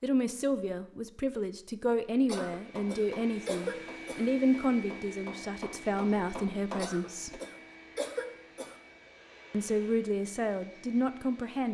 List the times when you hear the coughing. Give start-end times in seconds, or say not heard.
2.2-4.2, 6.8-8.8.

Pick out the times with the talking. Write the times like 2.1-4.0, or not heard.
0.0-7.4, 9.5-11.7.